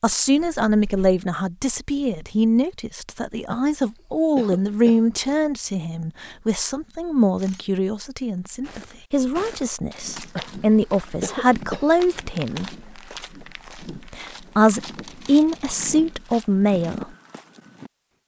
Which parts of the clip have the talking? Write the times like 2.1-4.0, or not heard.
0.0-12.8, 14.1-17.1.